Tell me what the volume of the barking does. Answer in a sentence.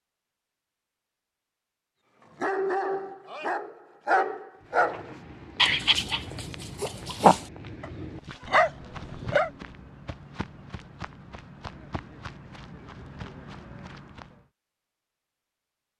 The loudness of the barking goes up.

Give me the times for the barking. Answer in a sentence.
The barking can be heard from 2.4 to 9.5 s.